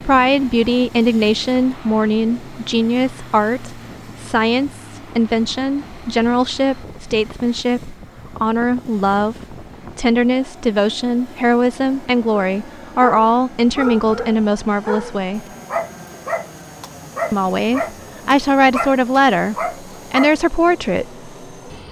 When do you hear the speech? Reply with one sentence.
You can hear the speech from 0.0 to 15.4 s and from 17.3 to 21.2 s.